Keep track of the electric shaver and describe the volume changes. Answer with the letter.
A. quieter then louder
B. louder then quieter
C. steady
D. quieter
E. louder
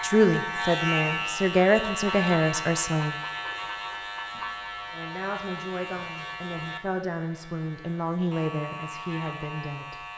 D.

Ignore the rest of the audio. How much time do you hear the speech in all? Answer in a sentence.
You can hear the speech for 8 seconds altogether.